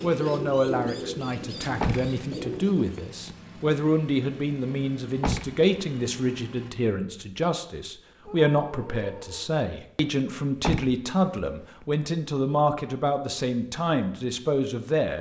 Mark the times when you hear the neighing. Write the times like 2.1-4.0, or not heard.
not heard.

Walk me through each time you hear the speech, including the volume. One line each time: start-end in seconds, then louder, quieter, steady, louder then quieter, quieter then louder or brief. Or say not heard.
0.0-15.1 steady.